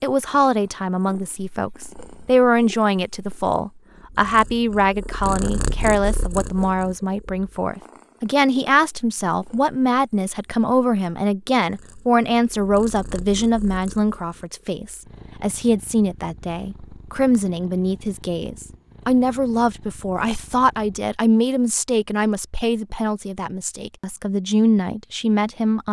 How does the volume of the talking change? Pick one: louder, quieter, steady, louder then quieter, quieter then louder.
steady.